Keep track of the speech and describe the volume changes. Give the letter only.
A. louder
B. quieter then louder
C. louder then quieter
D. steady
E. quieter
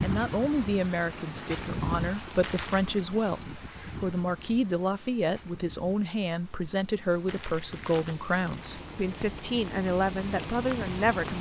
D.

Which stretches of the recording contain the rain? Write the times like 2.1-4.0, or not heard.
0.0-11.3.